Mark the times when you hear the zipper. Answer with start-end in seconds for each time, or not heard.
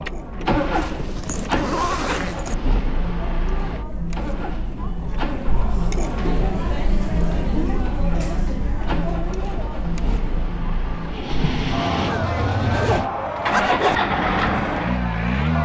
0.6-2.5, 12.0-14.0.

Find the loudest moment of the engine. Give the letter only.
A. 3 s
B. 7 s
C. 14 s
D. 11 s
C.